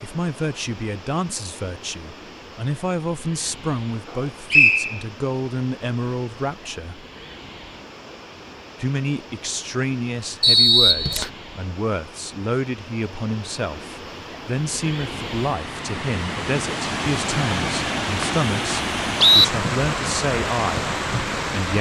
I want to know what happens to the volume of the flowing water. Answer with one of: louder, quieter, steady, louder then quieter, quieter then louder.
louder.